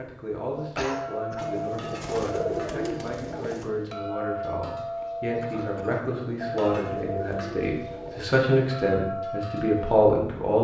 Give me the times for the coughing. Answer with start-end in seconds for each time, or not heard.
0.8-1.5, 5.4-6.1.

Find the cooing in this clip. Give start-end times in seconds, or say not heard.
1.4-3.8, 6.0-8.2.